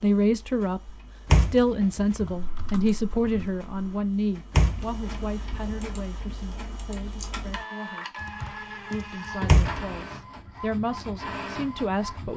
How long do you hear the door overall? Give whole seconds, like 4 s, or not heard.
3 s.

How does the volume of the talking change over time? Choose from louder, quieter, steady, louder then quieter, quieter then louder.
quieter then louder.